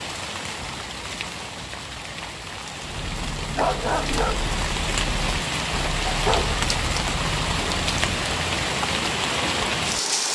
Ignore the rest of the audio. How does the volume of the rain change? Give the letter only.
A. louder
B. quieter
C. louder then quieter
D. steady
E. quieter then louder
A.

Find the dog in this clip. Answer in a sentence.
You can hear the dog from 2.8 to 8.2 s.